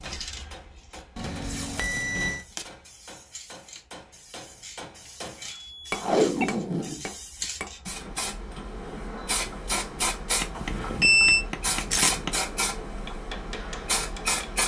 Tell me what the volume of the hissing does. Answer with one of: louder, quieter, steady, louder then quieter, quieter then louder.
louder.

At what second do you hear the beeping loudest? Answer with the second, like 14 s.
11 s.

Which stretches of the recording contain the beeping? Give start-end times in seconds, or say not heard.
1.1-2.4, 5.7-6.5, 10.6-11.4.